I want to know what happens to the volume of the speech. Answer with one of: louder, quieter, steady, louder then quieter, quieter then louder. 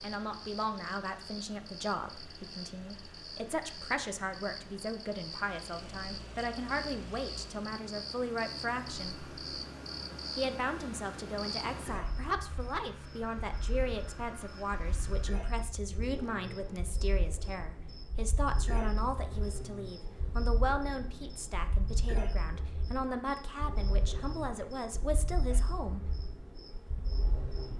steady.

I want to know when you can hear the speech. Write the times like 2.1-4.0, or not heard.
0.0-9.2, 10.3-26.1.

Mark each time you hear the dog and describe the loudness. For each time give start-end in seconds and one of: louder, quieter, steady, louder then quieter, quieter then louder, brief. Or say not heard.
not heard.